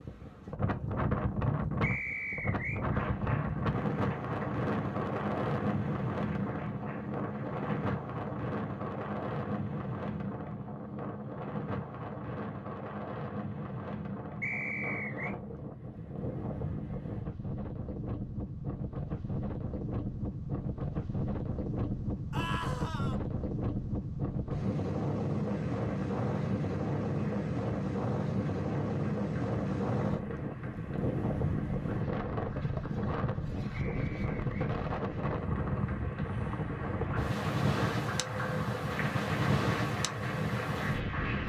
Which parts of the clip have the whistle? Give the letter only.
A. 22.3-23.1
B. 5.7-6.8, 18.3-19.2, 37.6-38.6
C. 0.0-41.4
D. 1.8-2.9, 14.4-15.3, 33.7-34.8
D.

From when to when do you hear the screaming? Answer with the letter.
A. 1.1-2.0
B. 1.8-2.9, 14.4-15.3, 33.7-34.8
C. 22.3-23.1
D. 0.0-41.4
C.